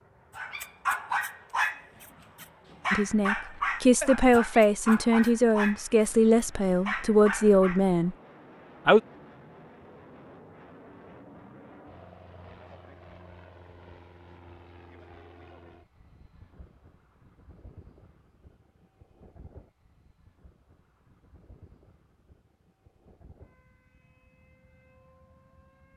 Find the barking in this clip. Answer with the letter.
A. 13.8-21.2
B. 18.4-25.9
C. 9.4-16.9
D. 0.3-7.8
D.